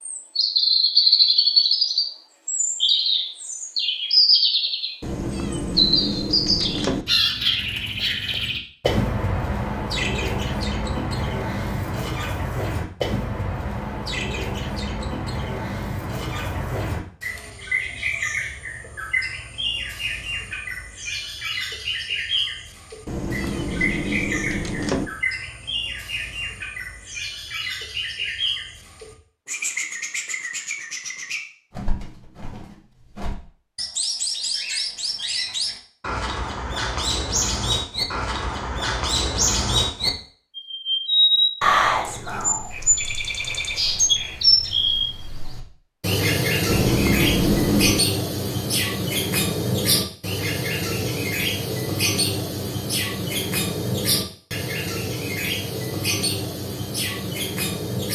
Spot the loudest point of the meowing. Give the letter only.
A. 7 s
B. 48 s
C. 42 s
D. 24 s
B.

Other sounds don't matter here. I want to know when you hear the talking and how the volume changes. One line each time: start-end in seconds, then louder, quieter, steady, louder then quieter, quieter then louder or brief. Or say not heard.
not heard.